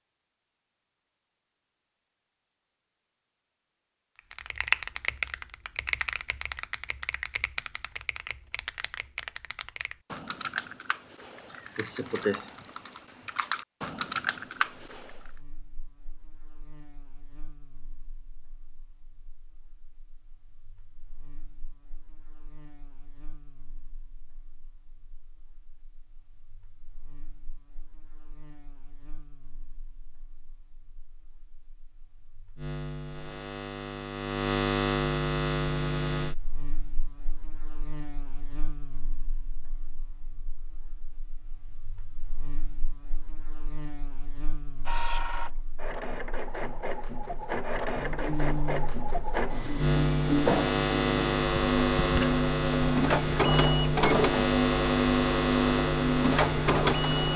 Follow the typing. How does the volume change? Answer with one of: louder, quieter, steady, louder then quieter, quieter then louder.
quieter then louder.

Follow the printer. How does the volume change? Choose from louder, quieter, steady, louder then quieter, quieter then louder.
louder.